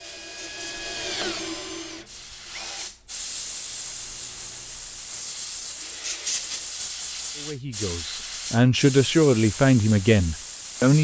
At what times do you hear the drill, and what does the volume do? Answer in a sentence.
You can hear the drill from 0.0 to 6.8 s, getting quieter then louder.